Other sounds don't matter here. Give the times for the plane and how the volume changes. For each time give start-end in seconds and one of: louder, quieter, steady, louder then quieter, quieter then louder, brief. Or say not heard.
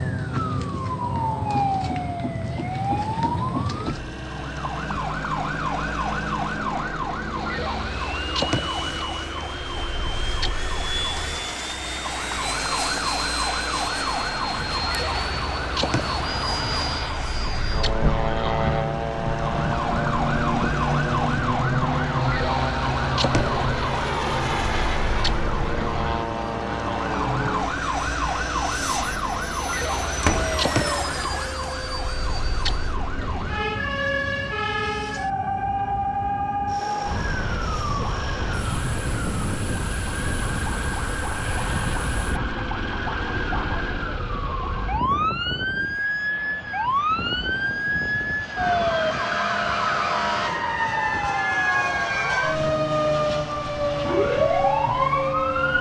0.0-55.7 louder then quieter.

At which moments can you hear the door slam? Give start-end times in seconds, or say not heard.
30.2-30.6.